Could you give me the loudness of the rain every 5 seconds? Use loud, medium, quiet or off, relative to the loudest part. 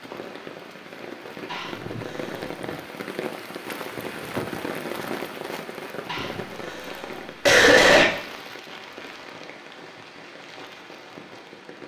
loud, loud, medium.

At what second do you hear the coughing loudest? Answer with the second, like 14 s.
8 s.